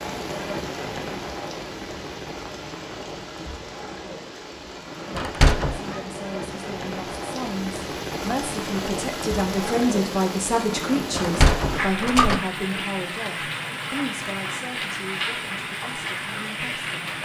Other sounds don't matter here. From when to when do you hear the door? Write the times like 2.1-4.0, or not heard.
5.2-5.8, 11.1-12.4.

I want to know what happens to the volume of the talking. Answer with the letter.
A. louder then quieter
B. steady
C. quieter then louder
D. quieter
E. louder
A.